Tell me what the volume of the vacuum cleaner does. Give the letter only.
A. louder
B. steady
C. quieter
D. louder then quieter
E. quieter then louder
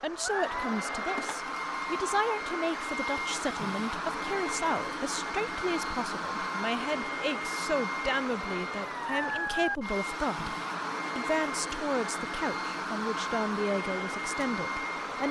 B.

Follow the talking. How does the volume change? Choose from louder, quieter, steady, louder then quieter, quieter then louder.
steady.